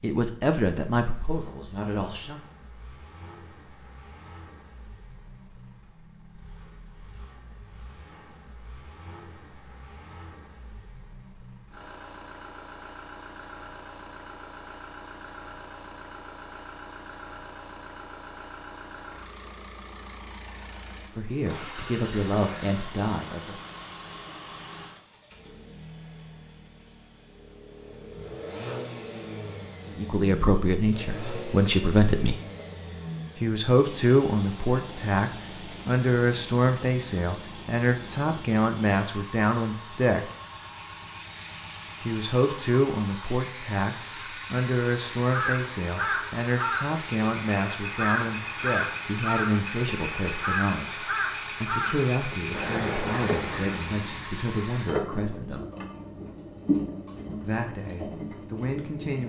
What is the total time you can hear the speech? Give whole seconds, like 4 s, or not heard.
30 s.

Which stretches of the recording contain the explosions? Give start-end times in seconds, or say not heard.
not heard.